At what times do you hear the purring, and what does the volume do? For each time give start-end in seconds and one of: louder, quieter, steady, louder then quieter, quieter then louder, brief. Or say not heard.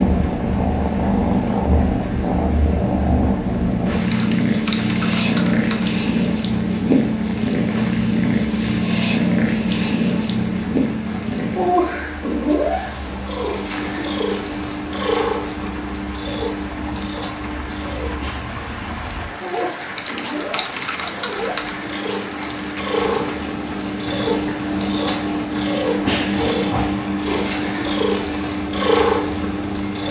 0.0-30.0 quieter then louder.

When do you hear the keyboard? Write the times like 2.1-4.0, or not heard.
4.0-5.9, 19.9-21.8.